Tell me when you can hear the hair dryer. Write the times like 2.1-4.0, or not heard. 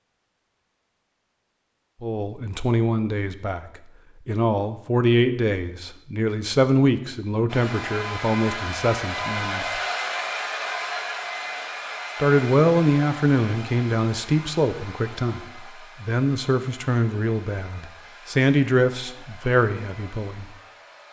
7.5-21.0.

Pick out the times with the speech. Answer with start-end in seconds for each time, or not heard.
2.0-9.8, 12.2-20.4.